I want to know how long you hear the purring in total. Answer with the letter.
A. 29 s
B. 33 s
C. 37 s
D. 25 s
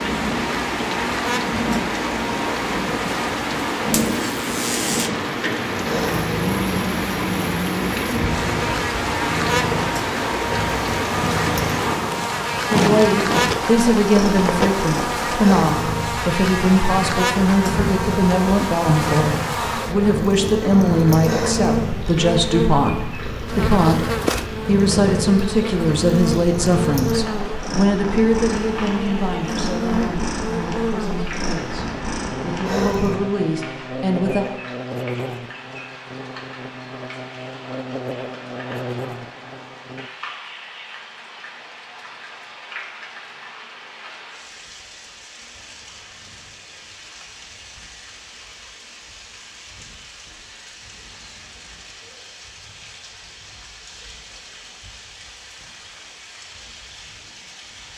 B.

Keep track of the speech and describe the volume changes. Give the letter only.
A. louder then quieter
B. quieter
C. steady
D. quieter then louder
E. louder
B.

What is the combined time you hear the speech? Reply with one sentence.
You can hear the speech for 22 seconds altogether.